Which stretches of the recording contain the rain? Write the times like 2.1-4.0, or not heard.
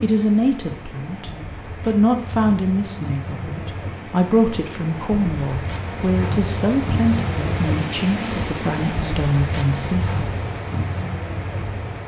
0.0-12.0.